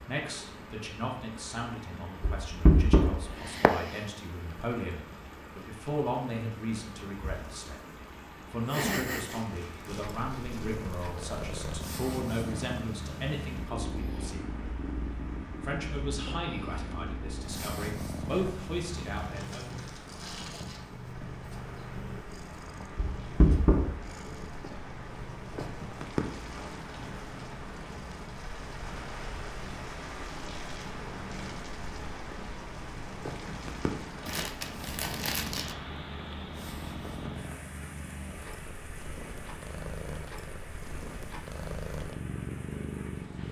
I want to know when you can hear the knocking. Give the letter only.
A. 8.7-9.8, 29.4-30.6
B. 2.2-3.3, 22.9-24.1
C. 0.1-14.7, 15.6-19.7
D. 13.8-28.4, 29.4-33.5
B.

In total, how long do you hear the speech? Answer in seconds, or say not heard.
19 s.